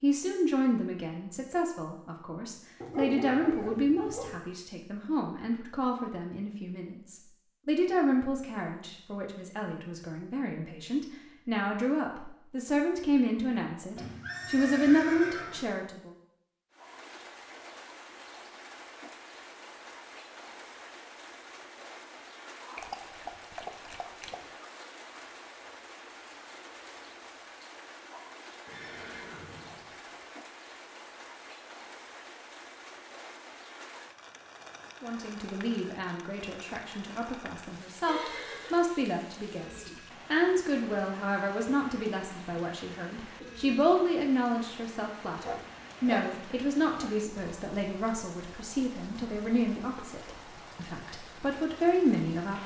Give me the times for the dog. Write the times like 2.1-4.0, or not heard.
2.8-4.4, 22.8-24.5, 45.4-47.1.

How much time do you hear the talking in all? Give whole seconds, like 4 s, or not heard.
34 s.